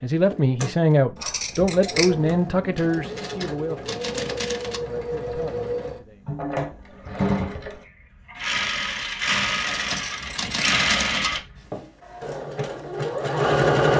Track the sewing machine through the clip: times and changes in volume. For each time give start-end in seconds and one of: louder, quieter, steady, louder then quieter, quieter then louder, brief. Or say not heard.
0.1-13.9 louder.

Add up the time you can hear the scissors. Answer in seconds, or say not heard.
2 s.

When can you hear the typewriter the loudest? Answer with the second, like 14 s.
11 s.